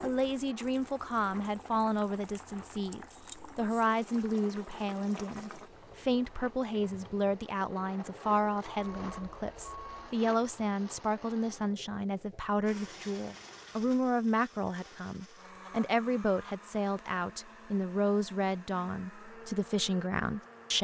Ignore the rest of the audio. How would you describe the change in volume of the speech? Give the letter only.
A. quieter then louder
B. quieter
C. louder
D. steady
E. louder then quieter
D.